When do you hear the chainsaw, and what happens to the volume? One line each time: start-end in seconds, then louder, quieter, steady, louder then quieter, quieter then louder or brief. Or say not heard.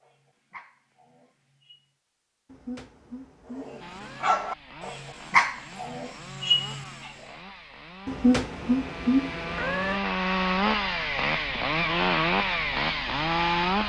3.8-13.8 louder.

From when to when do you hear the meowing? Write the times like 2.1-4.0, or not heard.
2.5-4.3, 8.1-10.0.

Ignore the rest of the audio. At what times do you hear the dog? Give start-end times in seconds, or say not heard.
0.0-1.9, 3.5-7.2.